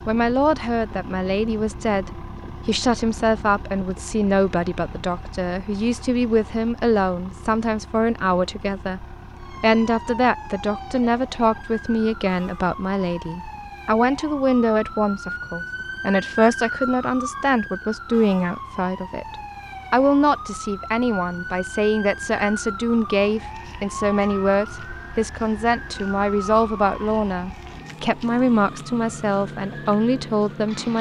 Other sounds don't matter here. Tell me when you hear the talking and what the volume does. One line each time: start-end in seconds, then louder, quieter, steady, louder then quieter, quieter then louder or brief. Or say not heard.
0.1-30.9 steady.